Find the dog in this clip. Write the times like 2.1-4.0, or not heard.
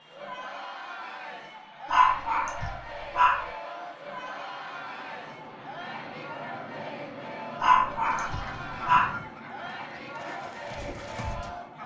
1.9-3.5, 7.6-9.1.